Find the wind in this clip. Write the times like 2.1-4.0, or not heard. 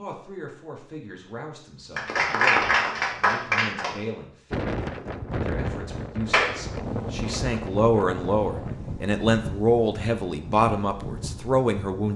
4.5-12.1.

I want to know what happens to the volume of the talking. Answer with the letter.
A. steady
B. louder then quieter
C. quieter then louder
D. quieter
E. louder
E.